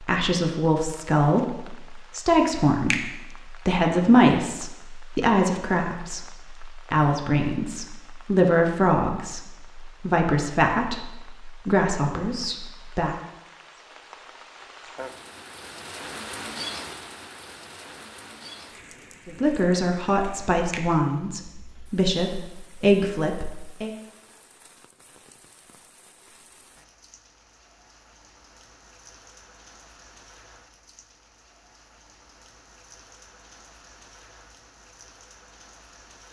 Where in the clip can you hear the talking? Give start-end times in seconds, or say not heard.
0.0-13.2, 19.2-23.9.